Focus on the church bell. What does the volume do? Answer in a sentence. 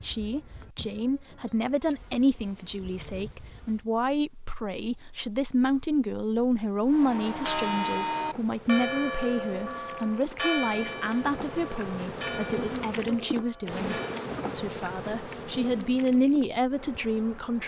The loudness of the church bell goes down.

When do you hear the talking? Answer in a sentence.
You can hear the talking from 0.0 to 13.9 s and from 14.6 to 17.6 s.